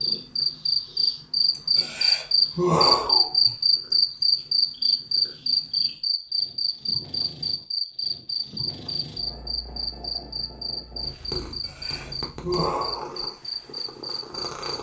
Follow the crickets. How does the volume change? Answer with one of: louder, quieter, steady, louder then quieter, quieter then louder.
quieter.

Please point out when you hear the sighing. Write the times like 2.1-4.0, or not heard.
1.5-3.5, 11.4-13.1.